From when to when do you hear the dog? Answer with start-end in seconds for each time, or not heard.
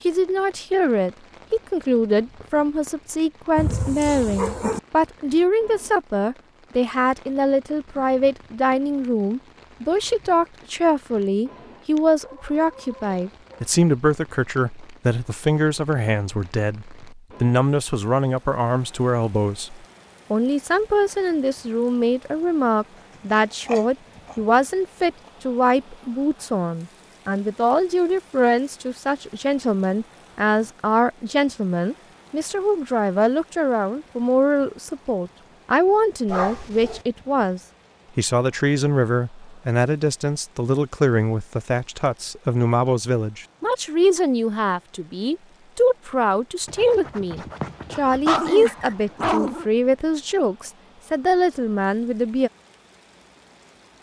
3.5-4.8, 11.9-13.7, 23.6-24.4, 36.2-37.0, 46.6-49.6.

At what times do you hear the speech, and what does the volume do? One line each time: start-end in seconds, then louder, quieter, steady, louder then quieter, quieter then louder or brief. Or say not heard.
0.1-52.5 steady.